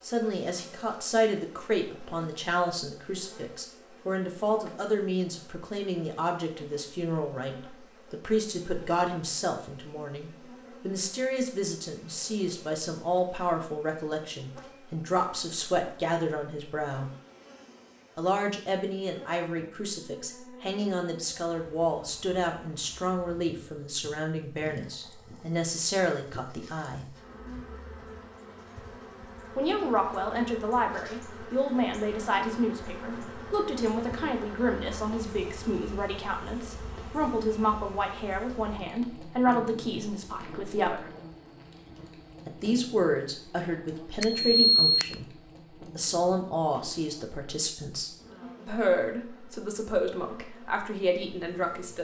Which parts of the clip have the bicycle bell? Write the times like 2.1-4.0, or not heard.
44.2-45.2.